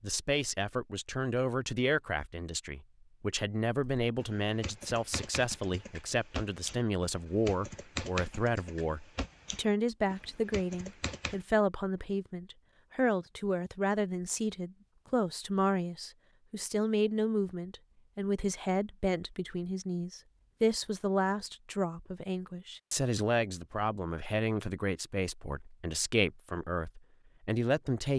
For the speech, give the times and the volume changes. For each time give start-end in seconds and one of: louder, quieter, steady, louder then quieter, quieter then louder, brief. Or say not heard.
0.0-28.1 steady.